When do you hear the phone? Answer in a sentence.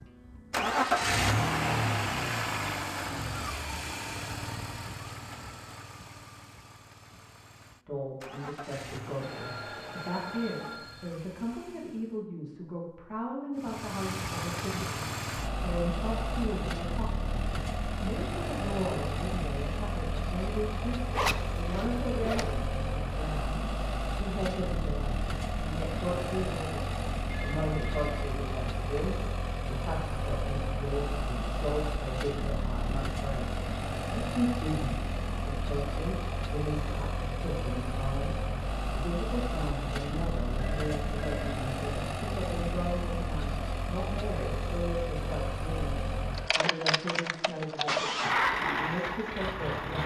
You can hear the phone from 9.2 to 11.1 s, from 27.3 to 29.2 s and from 40.5 to 41.5 s.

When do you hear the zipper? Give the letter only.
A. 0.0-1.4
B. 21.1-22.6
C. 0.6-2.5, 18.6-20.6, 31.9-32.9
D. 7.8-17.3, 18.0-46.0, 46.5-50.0
B.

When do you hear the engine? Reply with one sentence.
You can hear the engine from 0.0 to 12.2 s and from 13.6 to 50.0 s.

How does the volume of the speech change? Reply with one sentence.
The loudness of the speech stays about the same.